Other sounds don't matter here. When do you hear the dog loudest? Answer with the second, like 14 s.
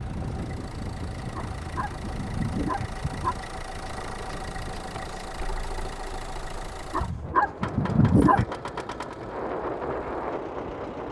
8 s.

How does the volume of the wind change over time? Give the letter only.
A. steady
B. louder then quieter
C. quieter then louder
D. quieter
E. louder
C.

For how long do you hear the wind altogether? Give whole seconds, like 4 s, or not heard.
11 s.